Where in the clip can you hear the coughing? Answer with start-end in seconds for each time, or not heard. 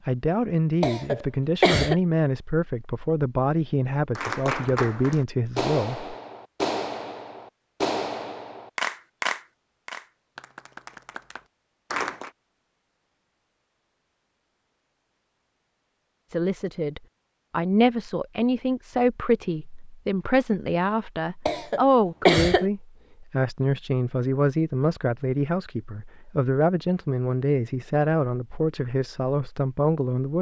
0.8-1.9, 21.4-22.6.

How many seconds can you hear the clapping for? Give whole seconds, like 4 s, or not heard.
8 s.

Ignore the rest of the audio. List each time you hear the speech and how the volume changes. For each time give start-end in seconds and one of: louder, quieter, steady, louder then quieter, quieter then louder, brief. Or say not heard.
0.1-6.0 steady
16.3-30.3 steady.